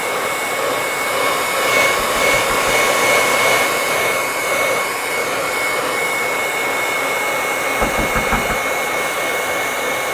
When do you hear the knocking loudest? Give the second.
8 s.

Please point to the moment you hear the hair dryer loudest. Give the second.
3 s.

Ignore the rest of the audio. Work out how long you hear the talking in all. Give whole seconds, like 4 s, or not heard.
not heard.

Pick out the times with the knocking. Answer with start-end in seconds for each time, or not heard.
1.9-2.8, 7.8-8.6.